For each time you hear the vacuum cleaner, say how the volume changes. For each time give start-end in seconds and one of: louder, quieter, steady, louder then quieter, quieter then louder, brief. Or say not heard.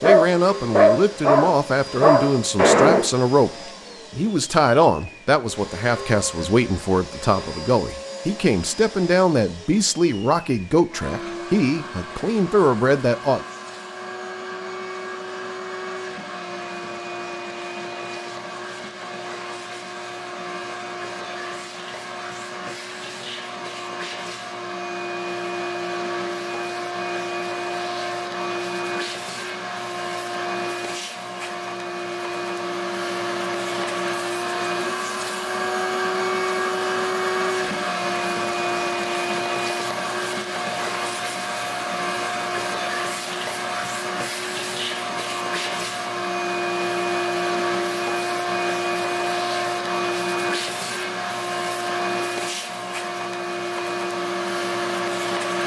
0.0-55.6 louder.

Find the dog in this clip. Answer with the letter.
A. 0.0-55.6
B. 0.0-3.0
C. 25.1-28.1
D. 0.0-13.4
B.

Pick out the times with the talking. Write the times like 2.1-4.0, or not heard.
0.0-13.4.